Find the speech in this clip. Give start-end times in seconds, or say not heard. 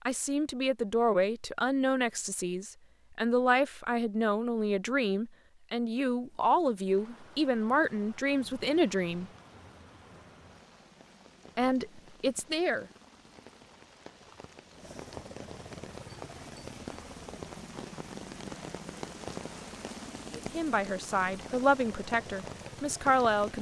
0.1-9.3, 11.6-12.8, 20.4-23.5.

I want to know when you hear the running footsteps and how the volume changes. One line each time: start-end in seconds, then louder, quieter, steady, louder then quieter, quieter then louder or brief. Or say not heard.
not heard.